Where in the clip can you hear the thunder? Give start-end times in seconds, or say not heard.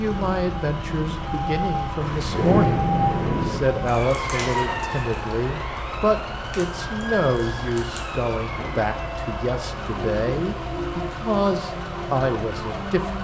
2.0-3.6.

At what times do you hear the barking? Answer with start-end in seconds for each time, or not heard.
not heard.